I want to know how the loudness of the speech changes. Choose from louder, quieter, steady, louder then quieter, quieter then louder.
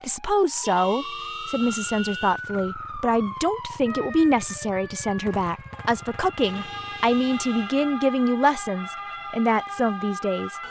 steady.